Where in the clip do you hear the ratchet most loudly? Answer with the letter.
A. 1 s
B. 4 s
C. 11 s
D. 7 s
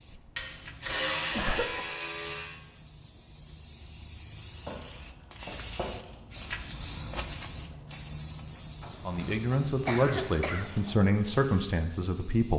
A.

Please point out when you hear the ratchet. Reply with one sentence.
The ratchet can be heard from 0.3 to 2.5 s, from 4.7 to 6.2 s and from 8.8 to 11.0 s.